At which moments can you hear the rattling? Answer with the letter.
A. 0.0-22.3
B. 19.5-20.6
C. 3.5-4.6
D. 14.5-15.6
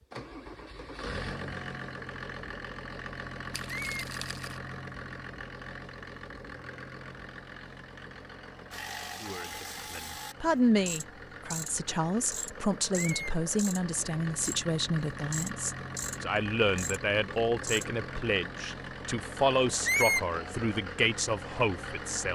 C.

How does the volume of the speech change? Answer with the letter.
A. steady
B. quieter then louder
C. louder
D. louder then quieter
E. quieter
A.